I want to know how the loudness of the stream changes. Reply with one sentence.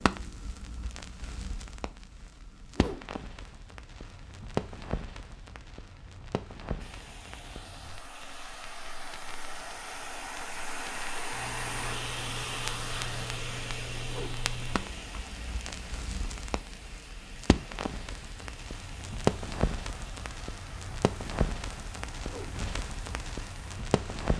The volume of the stream goes up, then down.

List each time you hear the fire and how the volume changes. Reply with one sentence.
The fire can be heard from 0.0 to 24.3 s, getting quieter then louder.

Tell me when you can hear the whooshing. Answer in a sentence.
You can hear the whooshing from 2.6 to 3.2 s, from 14.0 to 14.5 s and from 22.2 to 22.6 s.